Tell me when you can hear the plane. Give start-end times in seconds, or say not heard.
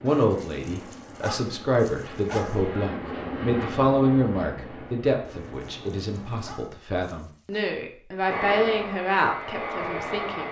0.0-6.5, 8.2-10.4.